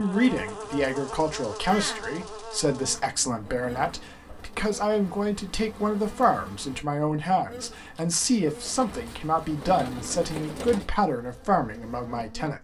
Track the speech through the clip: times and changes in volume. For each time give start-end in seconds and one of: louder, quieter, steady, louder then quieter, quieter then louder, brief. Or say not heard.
0.0-12.5 steady.